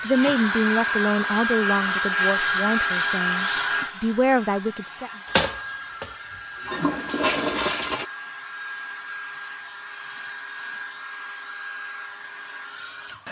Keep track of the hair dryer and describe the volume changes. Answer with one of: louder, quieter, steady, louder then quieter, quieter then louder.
quieter.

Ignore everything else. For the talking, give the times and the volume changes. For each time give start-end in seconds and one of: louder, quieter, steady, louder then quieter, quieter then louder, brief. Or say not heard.
0.0-5.1 quieter then louder.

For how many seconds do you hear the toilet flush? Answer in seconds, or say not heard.
3 s.